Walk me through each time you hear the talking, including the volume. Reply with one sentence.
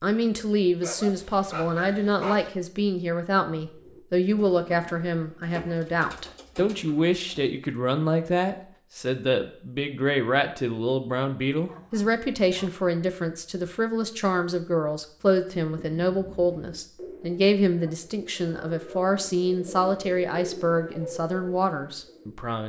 The talking can be heard from 0.0 to 22.6 s, at a steady volume.